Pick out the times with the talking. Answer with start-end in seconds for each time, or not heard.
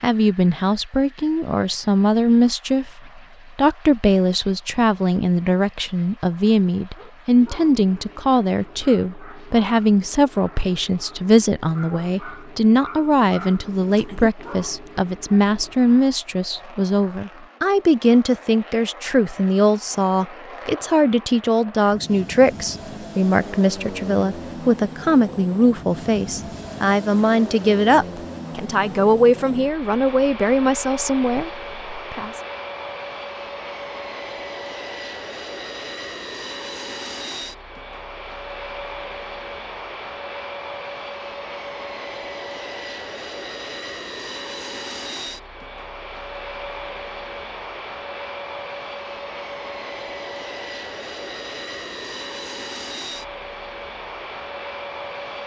0.0-32.3.